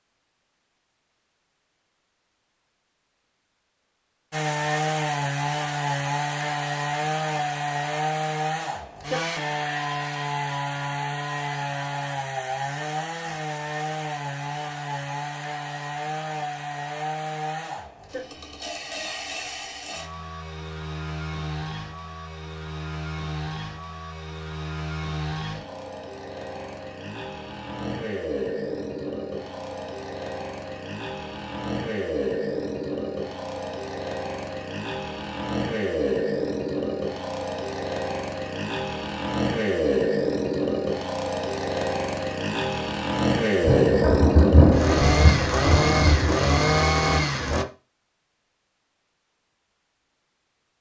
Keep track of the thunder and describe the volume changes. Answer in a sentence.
The volume of the thunder goes down.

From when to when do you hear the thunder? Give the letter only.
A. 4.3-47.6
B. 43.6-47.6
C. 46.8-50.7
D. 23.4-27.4
B.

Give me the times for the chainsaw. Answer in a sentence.
You can hear the chainsaw from 4.3 to 47.6 s.